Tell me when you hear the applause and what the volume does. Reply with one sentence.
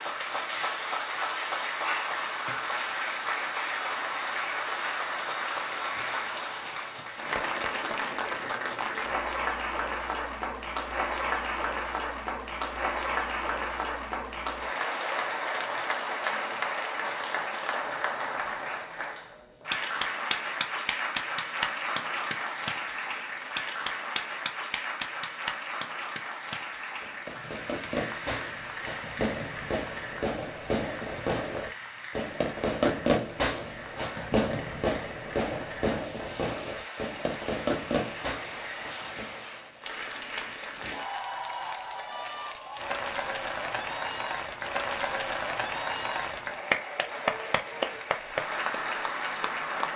You can hear the applause from 0.0 to 49.9 s, getting quieter then louder.